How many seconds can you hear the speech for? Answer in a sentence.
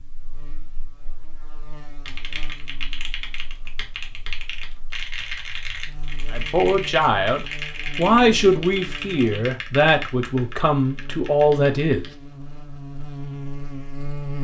The speech can be heard for 6 seconds in total.